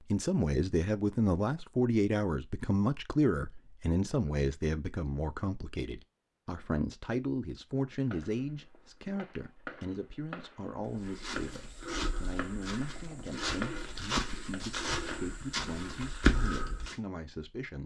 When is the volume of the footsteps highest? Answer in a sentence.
The loudest moment of the footsteps is at 16 seconds.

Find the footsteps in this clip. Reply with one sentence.
The footsteps can be heard from 10.8 to 16.9 s.